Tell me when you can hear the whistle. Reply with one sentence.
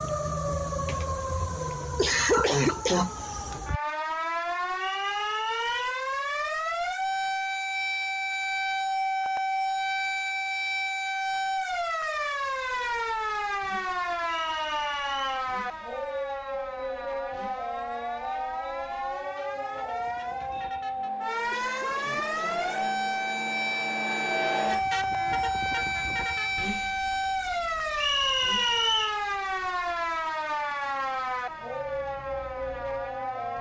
The whistle can be heard from 4.8 to 5.9 s, from 14.3 to 15.5 s and from 27.9 to 29.2 s.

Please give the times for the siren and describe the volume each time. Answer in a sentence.
The siren can be heard from 0.0 to 33.5 s, at a steady volume.